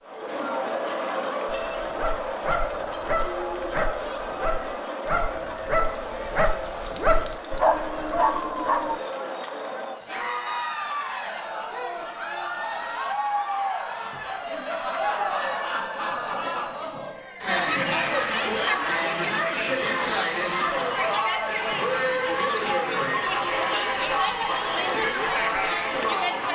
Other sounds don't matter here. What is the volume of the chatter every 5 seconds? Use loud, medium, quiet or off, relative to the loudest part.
medium, medium, medium, loud, loud, loud.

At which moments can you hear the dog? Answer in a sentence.
The dog can be heard from 1.4 to 9.0 s.